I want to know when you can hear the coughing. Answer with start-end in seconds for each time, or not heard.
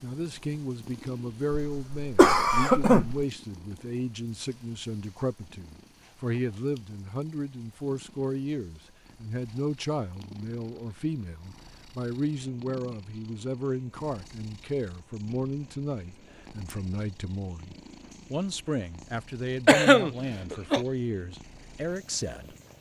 1.7-3.2, 19.6-20.9.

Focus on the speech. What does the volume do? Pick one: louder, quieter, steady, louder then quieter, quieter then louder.
steady.